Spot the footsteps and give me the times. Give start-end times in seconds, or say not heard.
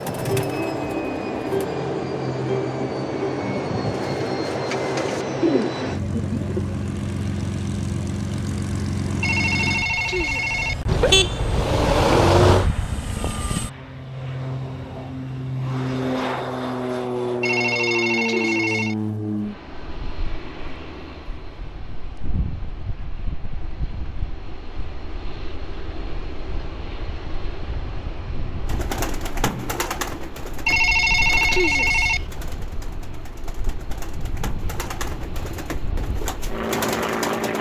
not heard.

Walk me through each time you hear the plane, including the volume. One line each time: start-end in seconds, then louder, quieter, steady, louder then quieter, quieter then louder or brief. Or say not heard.
0.0-37.5 quieter.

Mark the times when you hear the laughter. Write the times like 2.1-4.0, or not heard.
not heard.